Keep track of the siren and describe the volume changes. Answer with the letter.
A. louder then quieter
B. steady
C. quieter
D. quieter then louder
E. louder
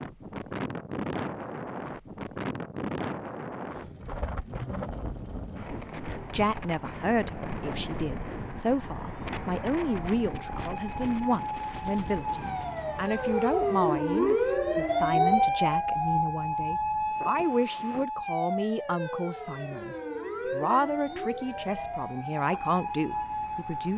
A.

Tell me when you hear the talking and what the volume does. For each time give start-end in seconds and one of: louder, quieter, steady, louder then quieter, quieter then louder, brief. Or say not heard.
6.3-23.9 steady.